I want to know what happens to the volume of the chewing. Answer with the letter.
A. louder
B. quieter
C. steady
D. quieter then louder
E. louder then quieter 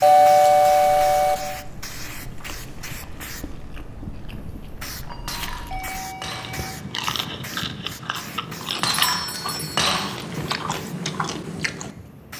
A.